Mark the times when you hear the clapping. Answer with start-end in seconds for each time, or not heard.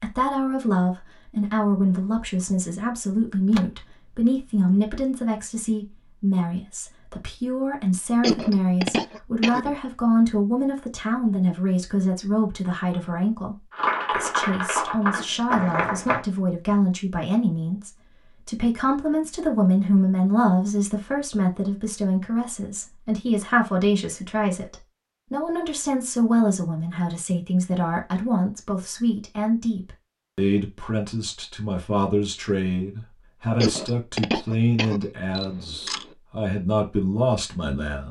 13.7-16.2.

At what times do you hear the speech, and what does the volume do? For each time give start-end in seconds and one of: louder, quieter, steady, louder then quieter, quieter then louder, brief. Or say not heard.
0.0-38.0 steady.